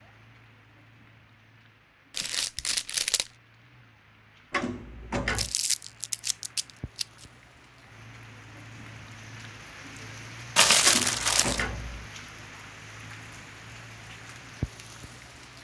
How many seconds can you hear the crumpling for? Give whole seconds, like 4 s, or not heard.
4 s.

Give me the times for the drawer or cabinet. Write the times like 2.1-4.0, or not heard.
4.5-5.5, 10.8-12.1.